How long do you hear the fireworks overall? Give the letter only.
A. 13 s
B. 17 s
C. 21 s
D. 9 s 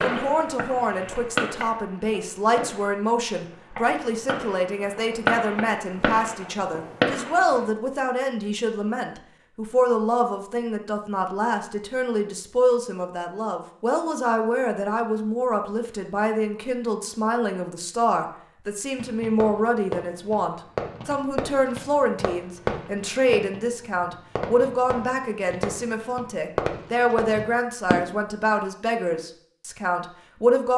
B.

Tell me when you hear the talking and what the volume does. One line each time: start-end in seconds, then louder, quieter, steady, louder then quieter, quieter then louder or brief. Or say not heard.
0.0-30.7 steady.